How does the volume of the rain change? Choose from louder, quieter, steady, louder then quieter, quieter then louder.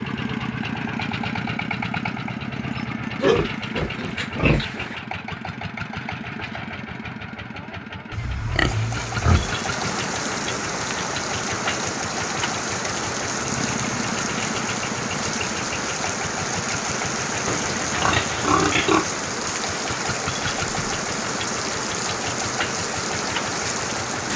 steady.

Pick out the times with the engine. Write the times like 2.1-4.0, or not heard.
0.0-24.3.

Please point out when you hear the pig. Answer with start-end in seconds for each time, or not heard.
3.2-5.0, 8.1-9.6, 17.4-19.1.